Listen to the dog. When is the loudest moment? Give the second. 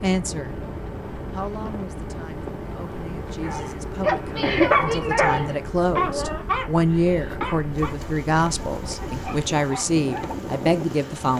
5 s.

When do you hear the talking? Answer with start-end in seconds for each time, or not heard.
0.0-0.6, 1.3-11.3.